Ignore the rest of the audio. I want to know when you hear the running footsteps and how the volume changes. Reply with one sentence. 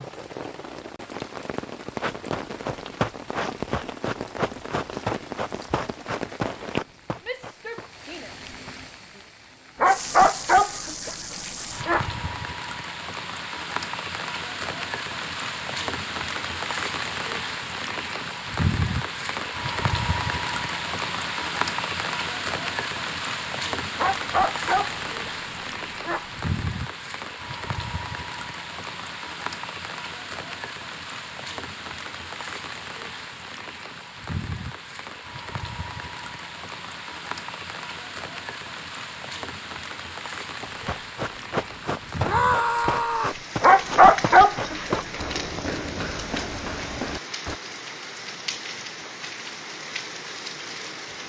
The running footsteps can be heard from 2.0 to 8.8 s, getting quieter; and from 40.6 to 47.5 s, at a steady volume.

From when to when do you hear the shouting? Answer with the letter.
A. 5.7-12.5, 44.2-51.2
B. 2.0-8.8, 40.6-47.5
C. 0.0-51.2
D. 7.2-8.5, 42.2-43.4
D.